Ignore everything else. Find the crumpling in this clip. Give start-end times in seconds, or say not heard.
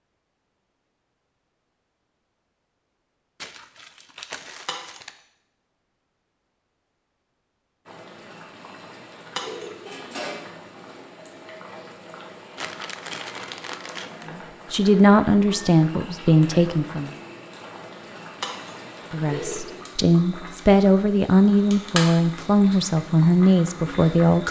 3.4-5.2, 12.6-14.3.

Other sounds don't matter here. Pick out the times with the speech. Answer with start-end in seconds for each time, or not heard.
14.3-17.1, 19.1-24.4.